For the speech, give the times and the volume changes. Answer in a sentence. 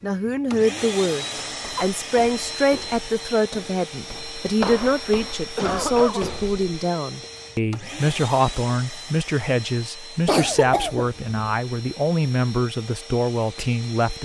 The speech can be heard from 0.0 to 14.1 s, at a steady volume.